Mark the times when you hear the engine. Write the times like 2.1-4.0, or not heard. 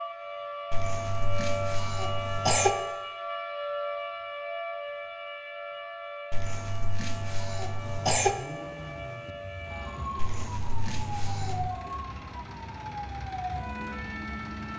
7.8-14.7.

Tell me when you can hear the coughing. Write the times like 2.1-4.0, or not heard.
0.7-2.7, 6.3-8.3, 10.2-11.7.